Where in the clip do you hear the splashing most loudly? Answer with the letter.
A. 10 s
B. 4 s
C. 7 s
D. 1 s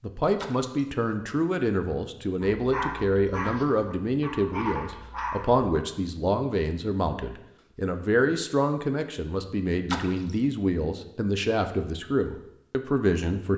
A.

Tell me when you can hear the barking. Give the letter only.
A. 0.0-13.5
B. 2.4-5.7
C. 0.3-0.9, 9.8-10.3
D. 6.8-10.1
B.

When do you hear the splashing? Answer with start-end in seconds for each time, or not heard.
0.3-0.9, 9.8-10.3.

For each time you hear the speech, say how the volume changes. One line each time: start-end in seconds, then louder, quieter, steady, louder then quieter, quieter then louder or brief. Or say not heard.
0.0-13.5 steady.